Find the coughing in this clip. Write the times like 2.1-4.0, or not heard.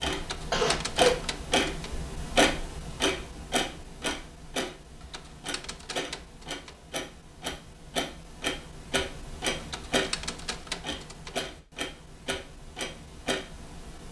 0.3-1.2.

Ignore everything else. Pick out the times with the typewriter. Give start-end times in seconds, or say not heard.
0.1-2.0, 5.0-6.8, 9.6-11.4.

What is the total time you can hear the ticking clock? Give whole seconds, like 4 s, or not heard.
14 s.